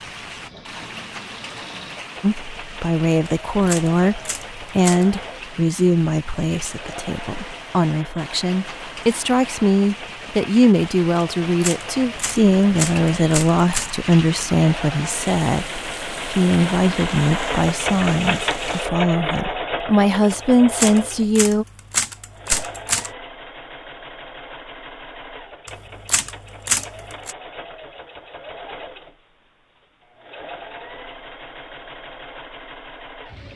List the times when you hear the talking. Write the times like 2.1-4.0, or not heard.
2.2-21.6.